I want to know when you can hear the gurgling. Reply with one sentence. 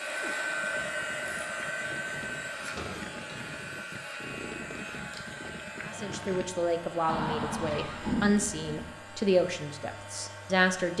The gurgling can be heard from 0.6 to 6.5 s.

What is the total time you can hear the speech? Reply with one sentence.
The speech can be heard for 5 seconds in total.